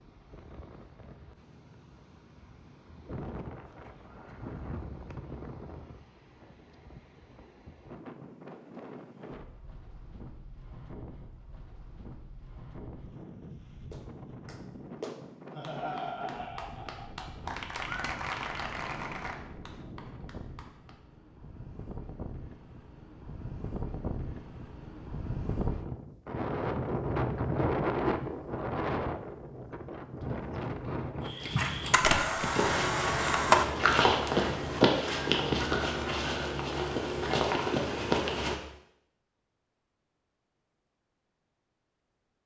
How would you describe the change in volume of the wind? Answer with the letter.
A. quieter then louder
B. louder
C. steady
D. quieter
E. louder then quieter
B.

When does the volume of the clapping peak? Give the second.
18 s.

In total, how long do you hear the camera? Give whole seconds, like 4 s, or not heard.
2 s.